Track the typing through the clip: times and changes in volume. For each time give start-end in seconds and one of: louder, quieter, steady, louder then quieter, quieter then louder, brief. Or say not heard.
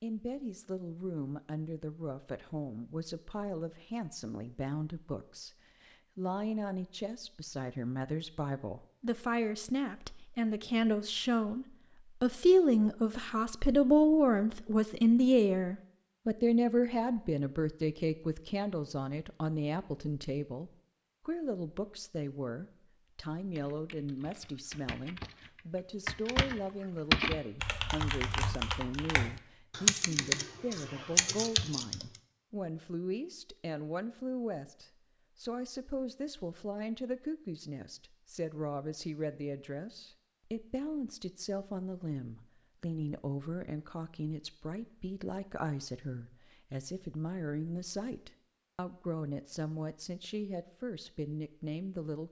23.6-32.0 louder.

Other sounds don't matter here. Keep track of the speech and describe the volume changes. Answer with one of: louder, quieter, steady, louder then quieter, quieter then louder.
louder then quieter.